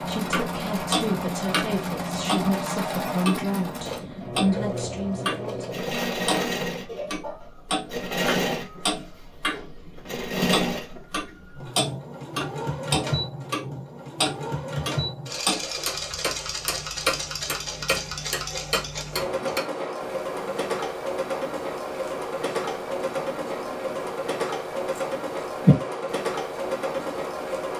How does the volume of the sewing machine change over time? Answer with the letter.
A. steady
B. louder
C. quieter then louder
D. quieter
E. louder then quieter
A.